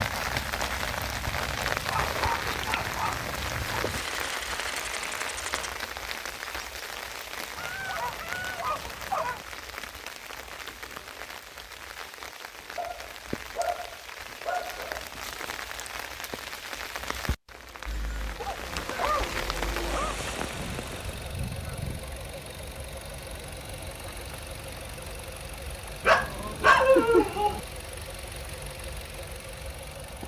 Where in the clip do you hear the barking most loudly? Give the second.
27 s.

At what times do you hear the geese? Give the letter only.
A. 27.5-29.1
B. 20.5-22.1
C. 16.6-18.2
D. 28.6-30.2
B.